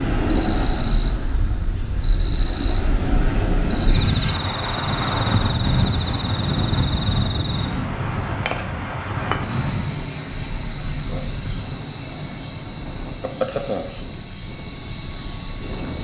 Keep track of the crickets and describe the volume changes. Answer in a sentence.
The volume of the crickets stays about the same.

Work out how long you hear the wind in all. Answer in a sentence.
You can hear the wind for 16 seconds altogether.